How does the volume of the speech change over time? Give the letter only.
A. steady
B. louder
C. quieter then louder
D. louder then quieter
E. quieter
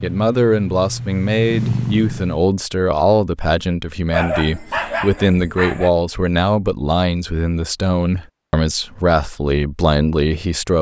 A.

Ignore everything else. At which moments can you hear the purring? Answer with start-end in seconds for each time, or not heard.
0.0-2.4.